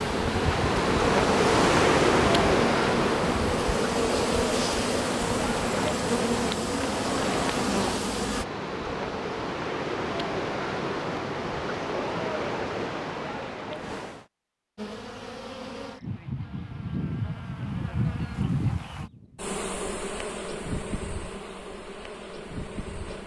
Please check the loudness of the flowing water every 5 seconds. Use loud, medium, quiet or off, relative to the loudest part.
loud, medium, medium, off, off.